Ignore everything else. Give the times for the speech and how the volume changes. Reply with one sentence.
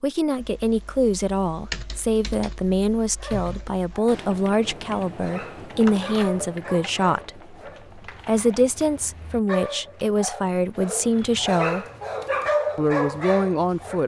The speech can be heard from 0.0 to 11.8 s, at a steady volume; and briefly from 12.8 to 14.0 s.